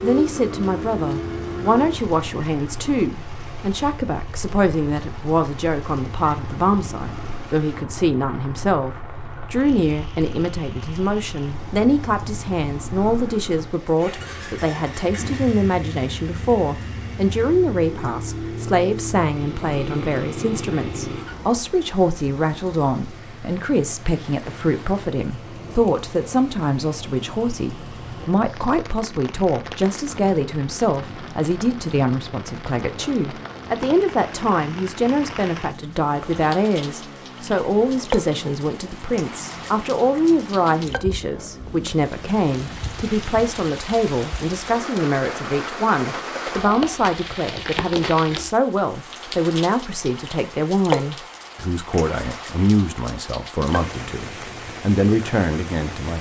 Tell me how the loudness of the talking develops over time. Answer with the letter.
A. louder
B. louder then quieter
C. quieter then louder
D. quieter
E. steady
E.